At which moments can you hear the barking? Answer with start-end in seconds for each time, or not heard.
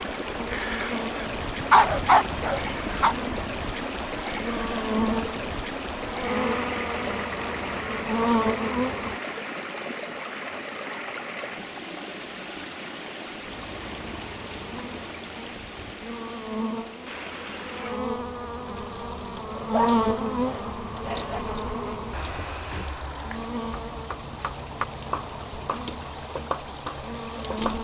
1.6-3.1, 19.6-21.4.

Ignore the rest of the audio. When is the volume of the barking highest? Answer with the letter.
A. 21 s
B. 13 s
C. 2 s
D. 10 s
C.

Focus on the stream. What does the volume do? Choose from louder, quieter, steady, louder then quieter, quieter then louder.
quieter.